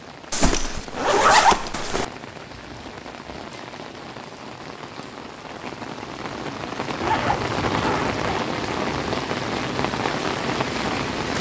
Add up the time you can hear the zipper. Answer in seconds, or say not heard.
3 s.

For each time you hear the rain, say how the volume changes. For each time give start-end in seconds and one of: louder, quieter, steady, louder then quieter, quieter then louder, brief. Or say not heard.
0.0-11.3 louder.